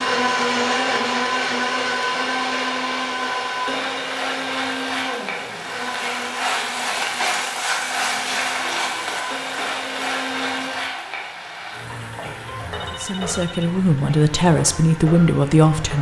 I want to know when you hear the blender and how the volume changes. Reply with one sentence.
You can hear the blender from 0.0 to 10.7 s, getting quieter.